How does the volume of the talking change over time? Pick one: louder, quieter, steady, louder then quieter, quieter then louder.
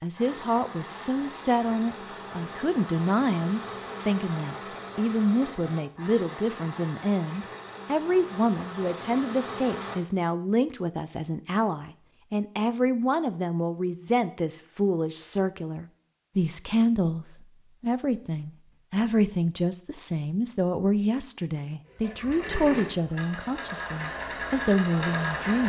steady.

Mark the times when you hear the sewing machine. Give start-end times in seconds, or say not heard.
0.1-10.0, 21.9-25.6.